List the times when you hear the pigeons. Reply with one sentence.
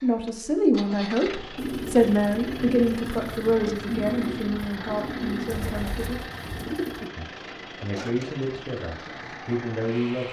You can hear the pigeons from 1.6 to 7.1 s.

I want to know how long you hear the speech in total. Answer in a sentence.
You can hear the speech for 9 seconds altogether.